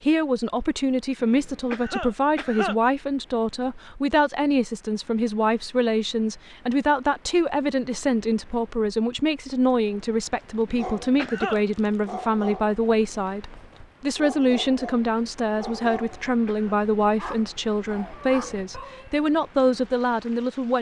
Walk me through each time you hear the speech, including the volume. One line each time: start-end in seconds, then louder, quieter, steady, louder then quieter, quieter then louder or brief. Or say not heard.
0.0-20.7 steady.